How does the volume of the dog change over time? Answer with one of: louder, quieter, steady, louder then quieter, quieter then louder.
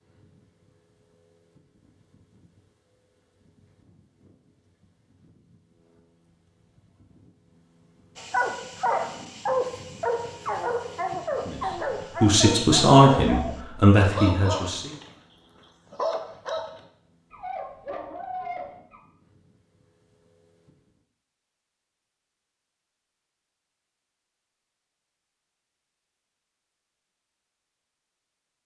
quieter.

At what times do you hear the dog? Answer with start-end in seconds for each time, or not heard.
8.2-19.0.